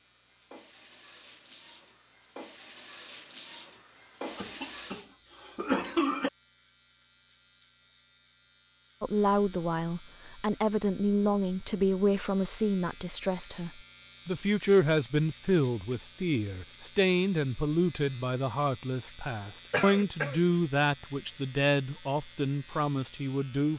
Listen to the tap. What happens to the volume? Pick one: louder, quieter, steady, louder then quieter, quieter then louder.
louder.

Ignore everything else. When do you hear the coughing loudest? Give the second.
6 s.